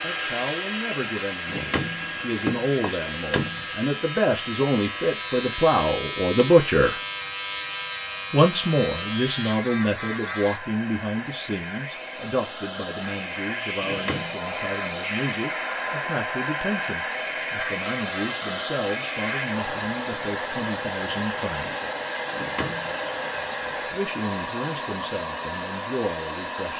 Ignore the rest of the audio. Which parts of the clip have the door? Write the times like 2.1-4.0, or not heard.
1.4-3.7, 13.8-14.4, 22.3-23.0.